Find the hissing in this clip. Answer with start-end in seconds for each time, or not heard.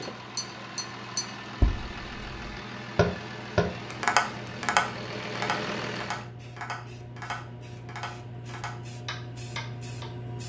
0.0-10.4.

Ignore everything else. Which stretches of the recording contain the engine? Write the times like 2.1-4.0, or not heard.
0.0-6.2.